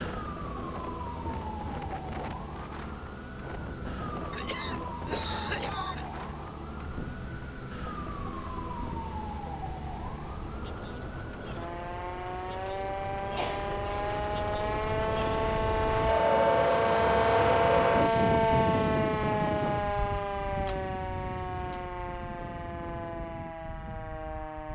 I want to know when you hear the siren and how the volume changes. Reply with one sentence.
You can hear the siren from 0.0 to 24.6 s, getting louder then quieter.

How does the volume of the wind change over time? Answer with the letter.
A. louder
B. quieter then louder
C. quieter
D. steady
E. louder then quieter
E.